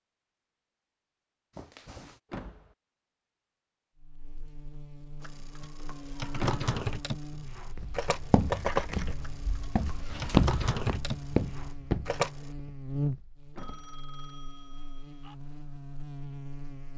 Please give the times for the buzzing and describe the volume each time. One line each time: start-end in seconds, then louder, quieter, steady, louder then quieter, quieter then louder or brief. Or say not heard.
4.0-16.9 louder then quieter.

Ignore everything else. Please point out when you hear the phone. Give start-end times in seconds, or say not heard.
1.6-2.2, 13.6-15.3.